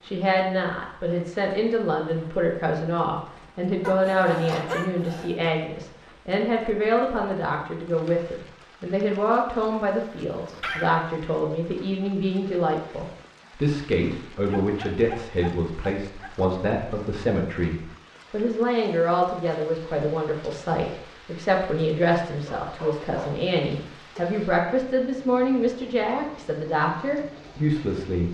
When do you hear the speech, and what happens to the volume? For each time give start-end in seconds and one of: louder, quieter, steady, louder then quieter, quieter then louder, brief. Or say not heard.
0.0-28.2 steady.